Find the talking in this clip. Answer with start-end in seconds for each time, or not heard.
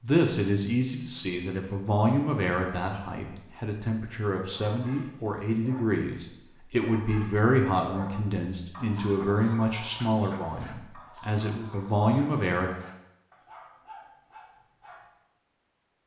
0.0-12.7.